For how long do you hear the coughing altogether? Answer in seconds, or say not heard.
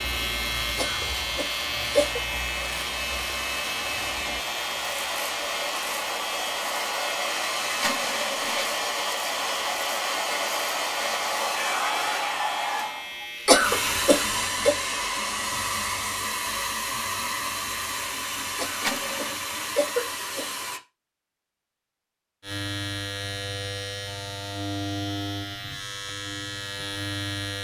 5 s.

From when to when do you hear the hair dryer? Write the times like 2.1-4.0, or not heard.
0.0-20.8.